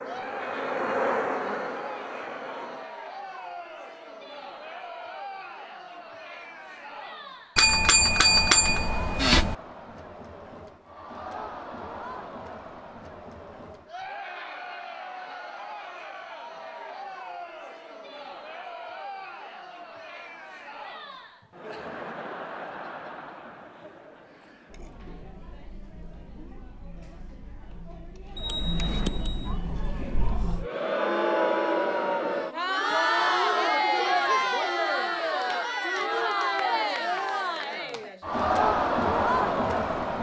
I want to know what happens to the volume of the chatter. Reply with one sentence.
The loudness of the chatter goes up.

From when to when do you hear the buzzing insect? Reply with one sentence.
You can hear the buzzing insect from 0.0 to 3.0 s.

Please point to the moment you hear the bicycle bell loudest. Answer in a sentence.
The loudest moment of the bicycle bell is at 8 seconds.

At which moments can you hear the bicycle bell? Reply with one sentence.
The bicycle bell can be heard from 7.5 to 9.6 s and from 28.4 to 29.6 s.